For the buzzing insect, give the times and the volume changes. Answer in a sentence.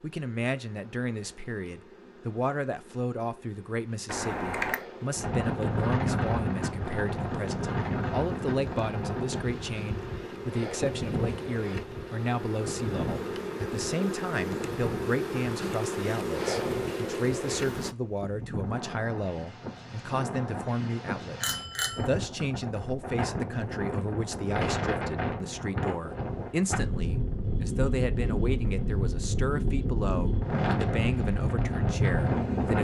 The buzzing insect can be heard from 0.0 to 17.9 s, getting louder.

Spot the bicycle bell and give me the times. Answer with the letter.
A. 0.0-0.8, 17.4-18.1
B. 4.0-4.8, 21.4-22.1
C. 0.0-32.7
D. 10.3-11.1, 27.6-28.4
B.